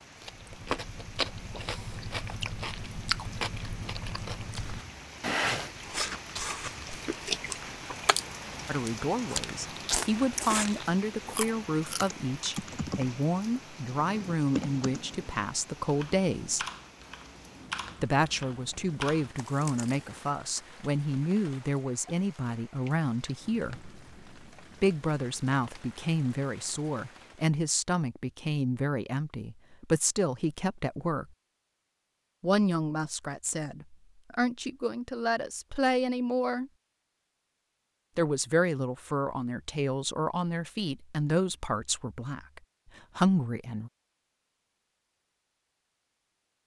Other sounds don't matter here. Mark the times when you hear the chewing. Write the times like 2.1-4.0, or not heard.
0.2-12.6.